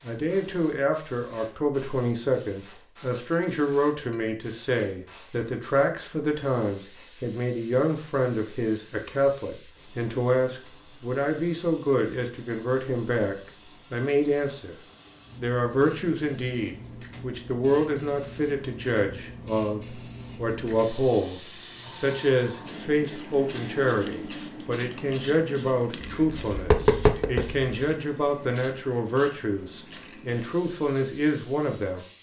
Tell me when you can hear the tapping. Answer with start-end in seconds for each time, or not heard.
3.0-4.2, 26.0-27.7.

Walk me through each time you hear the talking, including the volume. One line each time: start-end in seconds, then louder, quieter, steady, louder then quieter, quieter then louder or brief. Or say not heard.
0.0-14.8 steady
15.3-32.0 steady.